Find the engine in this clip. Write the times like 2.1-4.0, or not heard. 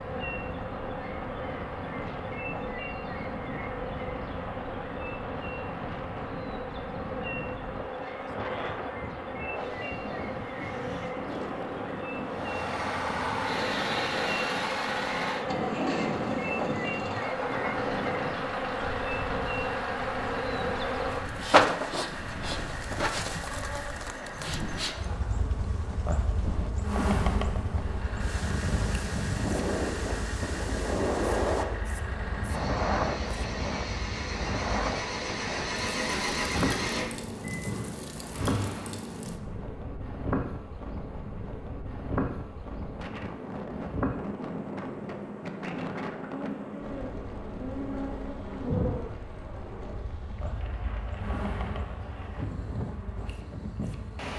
12.2-25.4, 27.8-39.2.